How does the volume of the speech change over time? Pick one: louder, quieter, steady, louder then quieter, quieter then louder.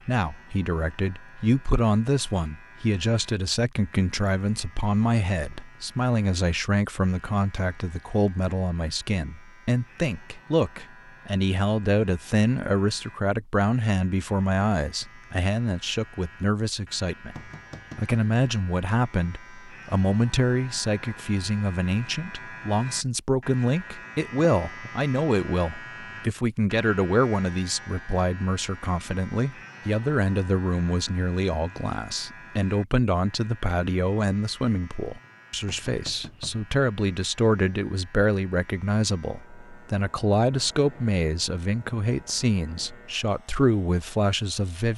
steady.